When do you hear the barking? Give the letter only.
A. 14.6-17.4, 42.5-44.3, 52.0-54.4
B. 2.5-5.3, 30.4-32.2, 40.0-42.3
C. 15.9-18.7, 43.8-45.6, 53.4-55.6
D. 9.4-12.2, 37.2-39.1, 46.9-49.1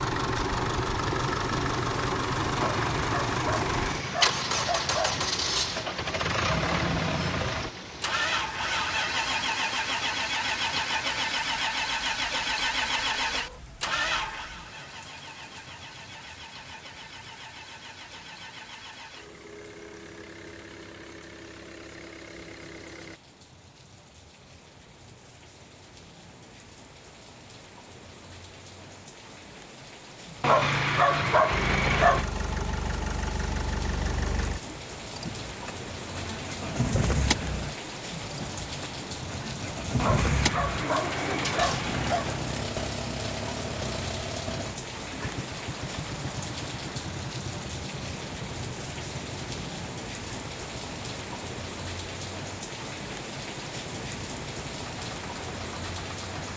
B.